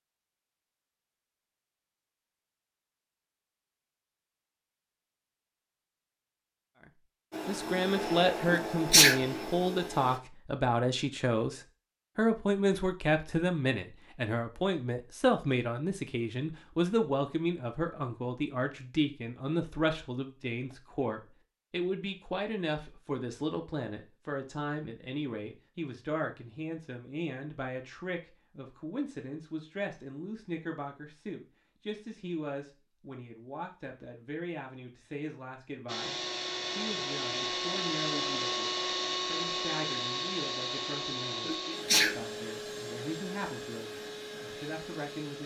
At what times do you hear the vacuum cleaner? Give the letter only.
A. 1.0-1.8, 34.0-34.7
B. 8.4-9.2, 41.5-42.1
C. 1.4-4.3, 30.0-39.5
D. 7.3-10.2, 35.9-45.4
D.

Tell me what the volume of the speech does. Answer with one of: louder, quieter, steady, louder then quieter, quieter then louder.
quieter.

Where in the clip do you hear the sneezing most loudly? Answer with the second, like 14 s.
9 s.